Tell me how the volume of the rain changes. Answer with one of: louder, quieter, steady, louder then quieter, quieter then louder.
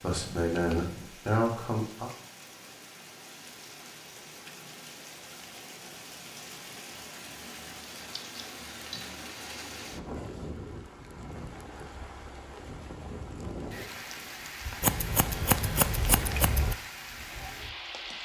louder.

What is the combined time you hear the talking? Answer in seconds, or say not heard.
2 s.